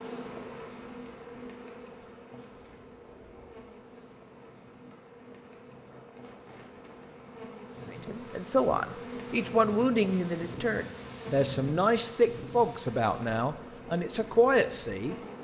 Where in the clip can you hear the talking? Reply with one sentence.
The talking can be heard from 7.9 to 15.2 s.